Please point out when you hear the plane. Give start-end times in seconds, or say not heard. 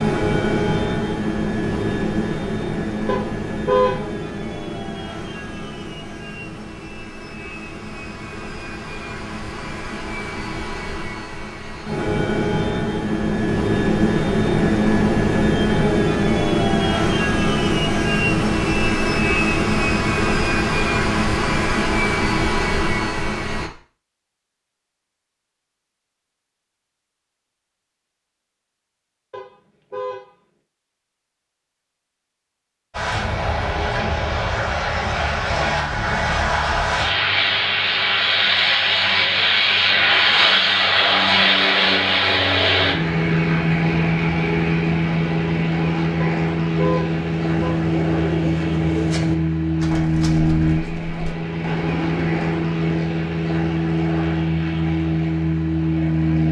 0.0-23.7, 32.9-56.4.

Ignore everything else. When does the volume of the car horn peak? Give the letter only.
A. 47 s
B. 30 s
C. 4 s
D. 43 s
C.